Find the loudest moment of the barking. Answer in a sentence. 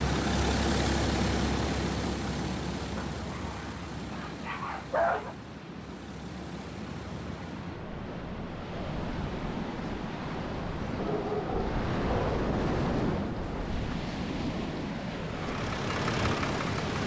The loudest moment of the barking is at 5 seconds.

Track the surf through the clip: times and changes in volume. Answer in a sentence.
The surf can be heard from 0.0 to 17.0 s, getting quieter then louder.